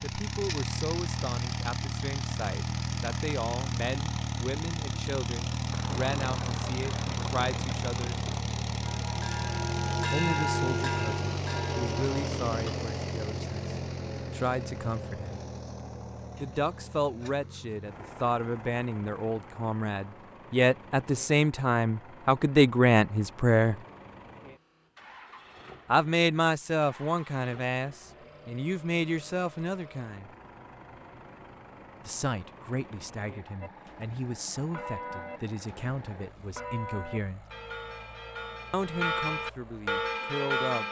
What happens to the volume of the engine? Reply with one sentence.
The loudness of the engine goes down.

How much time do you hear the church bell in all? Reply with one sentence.
You can hear the church bell for 11 seconds altogether.